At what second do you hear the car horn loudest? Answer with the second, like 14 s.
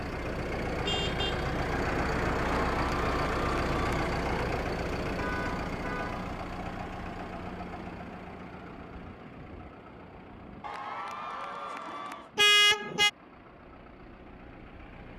13 s.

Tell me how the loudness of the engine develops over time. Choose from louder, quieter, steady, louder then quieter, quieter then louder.
quieter.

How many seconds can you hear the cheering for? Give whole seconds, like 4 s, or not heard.
4 s.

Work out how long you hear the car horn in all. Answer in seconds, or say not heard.
4 s.